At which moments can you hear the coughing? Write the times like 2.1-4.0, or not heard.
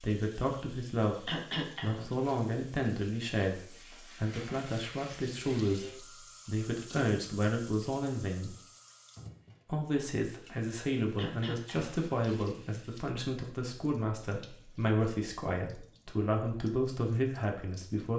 1.2-2.1, 11.2-11.9.